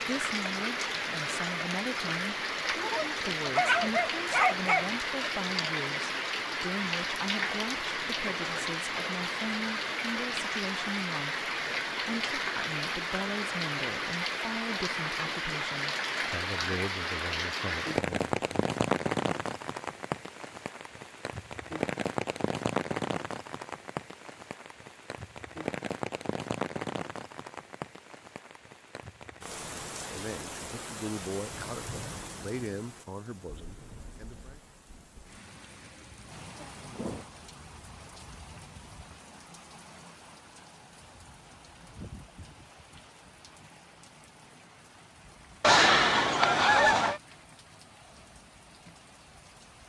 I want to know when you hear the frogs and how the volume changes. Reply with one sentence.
The frogs can't be heard in this clip.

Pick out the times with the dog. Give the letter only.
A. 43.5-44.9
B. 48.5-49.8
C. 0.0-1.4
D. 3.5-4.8
D.